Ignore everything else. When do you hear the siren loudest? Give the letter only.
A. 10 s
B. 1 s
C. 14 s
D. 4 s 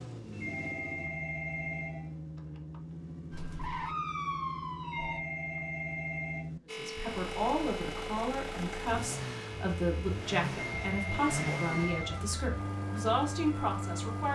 D.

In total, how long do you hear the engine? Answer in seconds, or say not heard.
14 s.